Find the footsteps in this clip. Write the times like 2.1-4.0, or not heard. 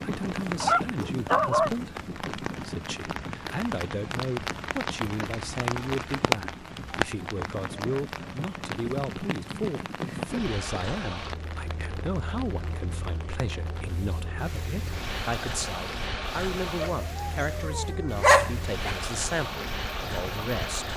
not heard.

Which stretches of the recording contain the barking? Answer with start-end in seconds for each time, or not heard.
0.6-1.7, 16.9-18.9.